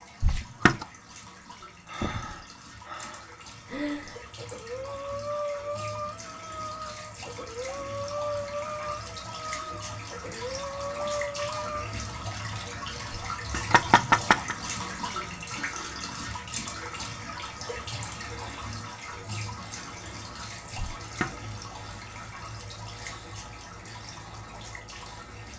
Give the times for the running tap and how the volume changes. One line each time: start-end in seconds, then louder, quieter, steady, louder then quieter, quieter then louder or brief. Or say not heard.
0.0-25.5 louder then quieter.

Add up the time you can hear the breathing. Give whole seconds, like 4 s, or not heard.
10 s.